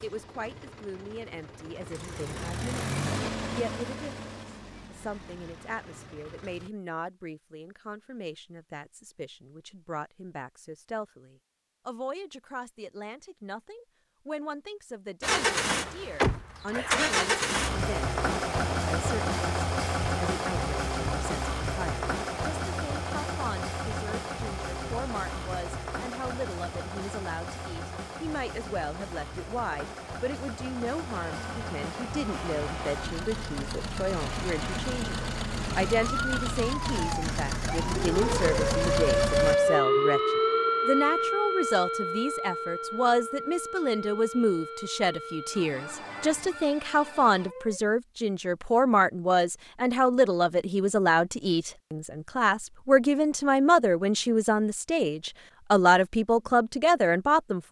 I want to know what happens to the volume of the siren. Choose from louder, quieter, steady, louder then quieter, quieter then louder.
louder then quieter.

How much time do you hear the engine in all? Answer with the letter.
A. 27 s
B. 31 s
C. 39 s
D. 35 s
B.